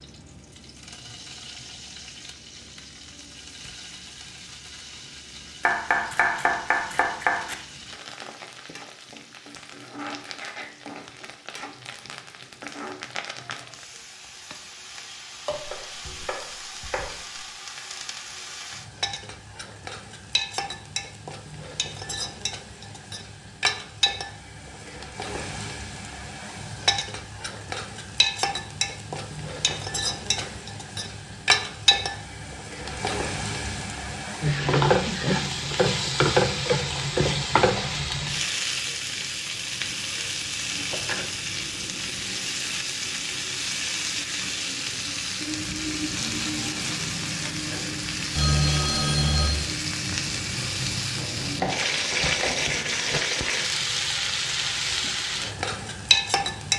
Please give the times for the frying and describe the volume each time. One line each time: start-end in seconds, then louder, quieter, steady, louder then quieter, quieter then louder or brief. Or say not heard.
0.0-56.7 louder.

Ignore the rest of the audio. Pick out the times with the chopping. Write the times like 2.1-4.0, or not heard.
5.6-7.5, 15.5-17.4, 29.6-30.6, 51.1-53.2.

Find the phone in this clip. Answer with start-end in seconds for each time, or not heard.
48.4-49.7.